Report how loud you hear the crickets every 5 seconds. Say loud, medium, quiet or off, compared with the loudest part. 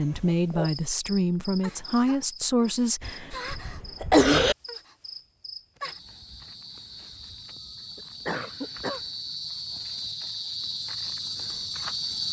medium, medium, loud.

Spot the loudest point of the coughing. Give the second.
4 s.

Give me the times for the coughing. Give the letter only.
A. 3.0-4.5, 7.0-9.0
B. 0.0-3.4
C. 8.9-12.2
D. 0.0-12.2
A.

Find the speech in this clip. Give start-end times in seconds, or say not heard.
0.0-3.4.